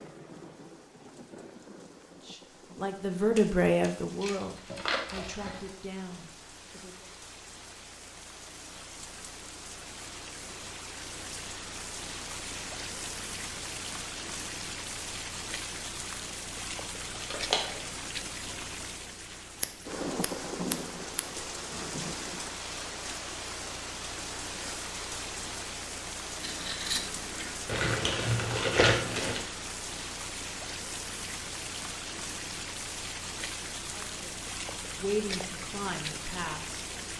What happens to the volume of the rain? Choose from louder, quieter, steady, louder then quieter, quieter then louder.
louder.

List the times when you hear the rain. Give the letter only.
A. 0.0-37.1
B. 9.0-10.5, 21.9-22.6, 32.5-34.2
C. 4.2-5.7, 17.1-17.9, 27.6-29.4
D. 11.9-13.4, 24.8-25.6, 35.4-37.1
A.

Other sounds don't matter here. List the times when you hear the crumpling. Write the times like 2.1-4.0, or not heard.
4.2-5.7, 17.1-17.9, 27.6-29.4.